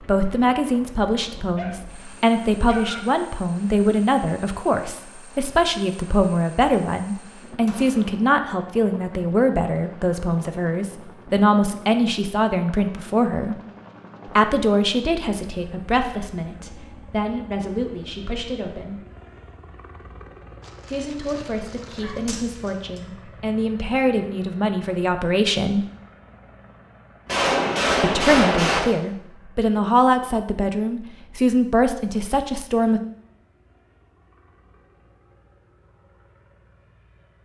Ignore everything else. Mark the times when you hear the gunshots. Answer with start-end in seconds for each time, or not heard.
7.7-8.2, 22.2-23.0, 27.2-28.8.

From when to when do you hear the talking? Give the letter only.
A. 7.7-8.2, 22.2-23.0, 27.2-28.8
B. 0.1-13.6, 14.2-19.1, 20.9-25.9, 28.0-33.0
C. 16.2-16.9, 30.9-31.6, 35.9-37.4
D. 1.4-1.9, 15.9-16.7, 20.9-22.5
B.